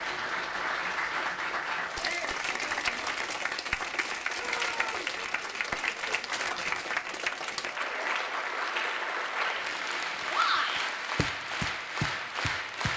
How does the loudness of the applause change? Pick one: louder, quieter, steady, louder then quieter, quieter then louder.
steady.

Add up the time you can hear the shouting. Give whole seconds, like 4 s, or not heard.
2 s.